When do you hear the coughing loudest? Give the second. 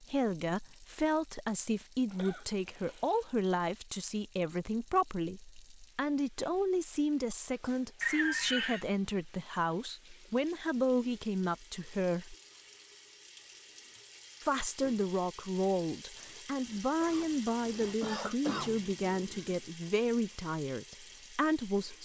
8 s.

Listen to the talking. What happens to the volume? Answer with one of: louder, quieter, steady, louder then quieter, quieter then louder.
steady.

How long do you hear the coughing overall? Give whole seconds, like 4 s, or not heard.
3 s.